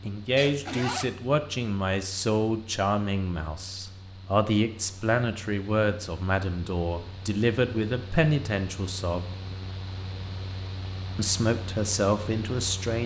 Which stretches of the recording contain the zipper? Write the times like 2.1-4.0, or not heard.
0.3-1.1.